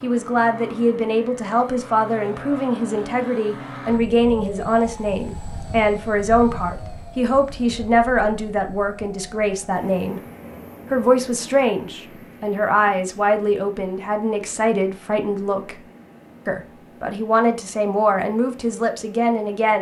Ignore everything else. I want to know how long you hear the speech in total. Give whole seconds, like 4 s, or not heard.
18 s.